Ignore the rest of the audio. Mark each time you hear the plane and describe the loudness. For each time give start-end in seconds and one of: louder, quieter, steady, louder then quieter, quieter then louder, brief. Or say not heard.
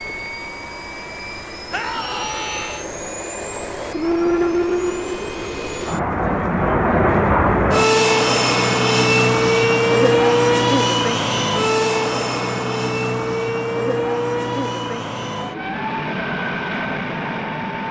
0.0-17.8 louder then quieter.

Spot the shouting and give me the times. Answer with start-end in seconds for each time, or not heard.
1.7-2.9.